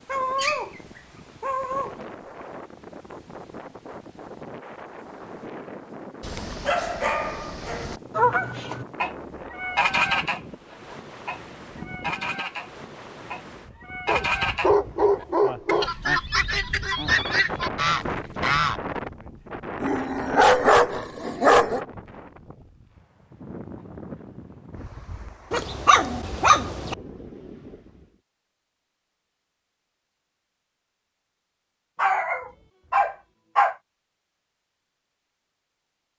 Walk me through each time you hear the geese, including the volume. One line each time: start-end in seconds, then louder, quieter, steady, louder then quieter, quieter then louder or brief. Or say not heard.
8.2-18.8 quieter then louder.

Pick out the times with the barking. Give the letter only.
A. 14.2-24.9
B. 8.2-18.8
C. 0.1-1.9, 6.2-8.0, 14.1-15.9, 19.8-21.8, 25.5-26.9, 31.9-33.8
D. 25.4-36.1
C.